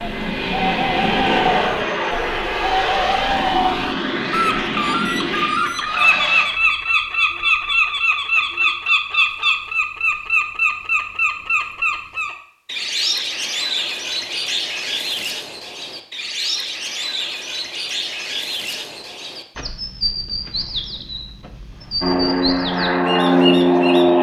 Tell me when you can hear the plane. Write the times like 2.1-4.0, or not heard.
0.0-6.5, 22.0-24.1.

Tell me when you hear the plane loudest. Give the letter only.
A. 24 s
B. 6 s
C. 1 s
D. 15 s
A.